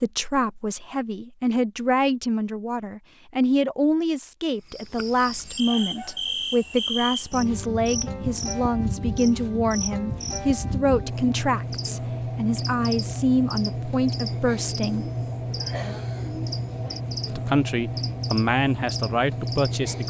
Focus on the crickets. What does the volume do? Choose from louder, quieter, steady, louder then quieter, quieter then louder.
steady.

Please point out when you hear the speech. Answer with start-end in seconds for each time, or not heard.
0.0-15.1, 17.2-20.0.